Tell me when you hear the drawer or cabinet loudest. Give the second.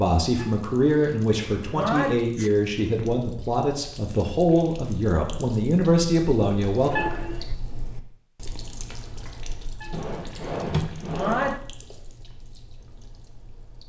11 s.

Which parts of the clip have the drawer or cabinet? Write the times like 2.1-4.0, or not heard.
1.2-1.9, 6.7-7.3, 9.9-11.6.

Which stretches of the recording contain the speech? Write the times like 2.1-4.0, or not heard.
0.0-7.0.